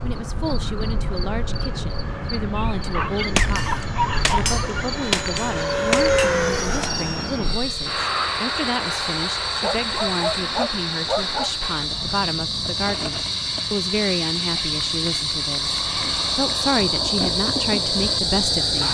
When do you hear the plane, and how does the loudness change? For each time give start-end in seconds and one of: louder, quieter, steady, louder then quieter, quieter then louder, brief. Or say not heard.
0.0-18.8 louder then quieter.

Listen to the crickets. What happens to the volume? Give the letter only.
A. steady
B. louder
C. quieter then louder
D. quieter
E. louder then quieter
B.